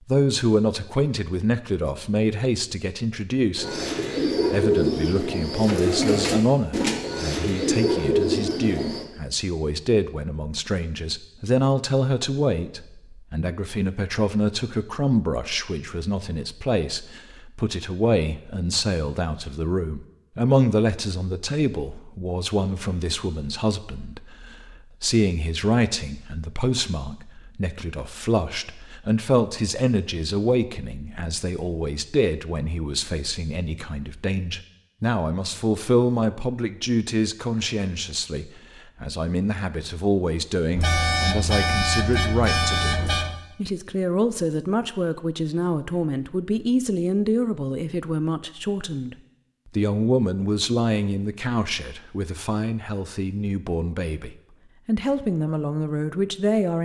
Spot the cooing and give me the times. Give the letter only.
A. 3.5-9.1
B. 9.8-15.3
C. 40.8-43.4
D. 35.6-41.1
A.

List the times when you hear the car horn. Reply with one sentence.
You can hear the car horn from 40.8 to 43.4 s.